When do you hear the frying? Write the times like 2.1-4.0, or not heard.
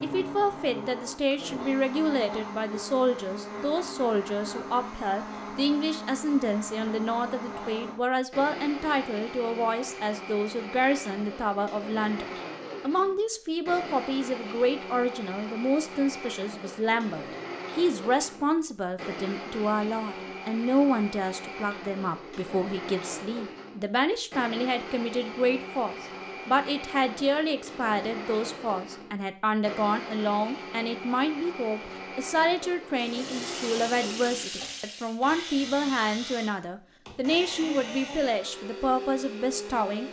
33.0-35.2.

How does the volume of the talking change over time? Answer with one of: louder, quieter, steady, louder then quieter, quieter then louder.
steady.